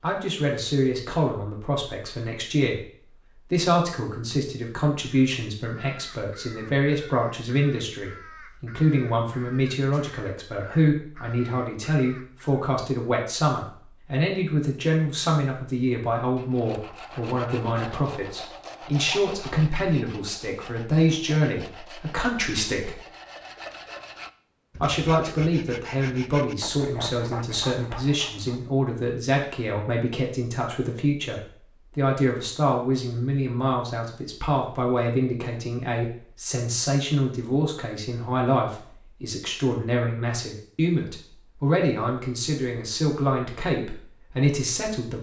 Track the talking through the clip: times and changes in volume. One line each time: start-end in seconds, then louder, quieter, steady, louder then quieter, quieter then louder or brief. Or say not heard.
0.0-23.0 steady
24.8-45.1 steady.